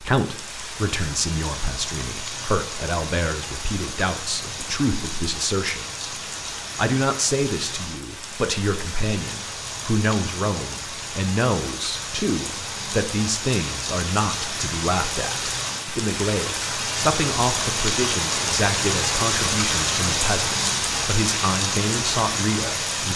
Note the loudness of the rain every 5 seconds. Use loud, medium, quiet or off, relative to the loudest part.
medium, medium, medium, loud, loud.